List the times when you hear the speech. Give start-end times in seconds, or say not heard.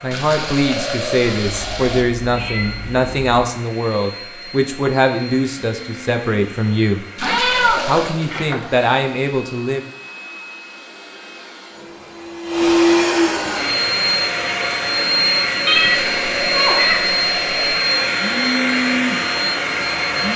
0.0-7.0, 7.8-9.8.